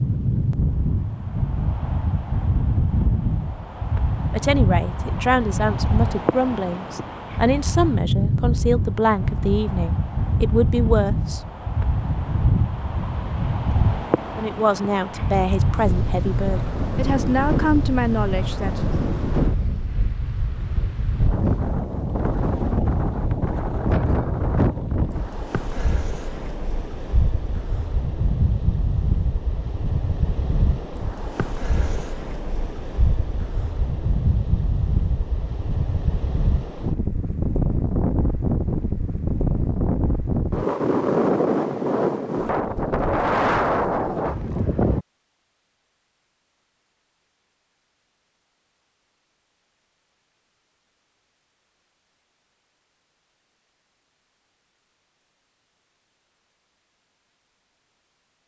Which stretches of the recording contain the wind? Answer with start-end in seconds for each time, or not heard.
0.0-45.0.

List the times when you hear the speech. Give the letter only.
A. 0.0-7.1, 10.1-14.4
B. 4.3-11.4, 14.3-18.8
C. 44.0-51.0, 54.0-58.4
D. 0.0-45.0
B.